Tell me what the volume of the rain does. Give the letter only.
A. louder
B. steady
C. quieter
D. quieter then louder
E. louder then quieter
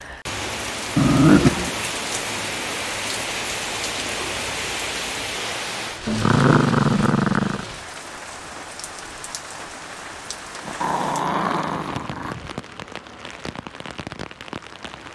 C.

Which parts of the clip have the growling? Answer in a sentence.
The growling can be heard from 0.9 to 1.7 s, from 6.0 to 7.7 s and from 10.7 to 12.3 s.